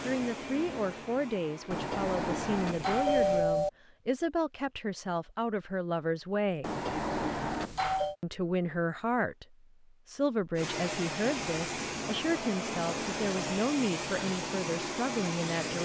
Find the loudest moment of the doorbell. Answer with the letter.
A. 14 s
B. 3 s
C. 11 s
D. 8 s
B.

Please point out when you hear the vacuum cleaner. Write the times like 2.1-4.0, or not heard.
0.0-3.5, 10.6-15.8.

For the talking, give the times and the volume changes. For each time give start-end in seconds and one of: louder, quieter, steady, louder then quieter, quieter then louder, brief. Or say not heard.
0.0-6.7 steady
8.2-15.8 steady.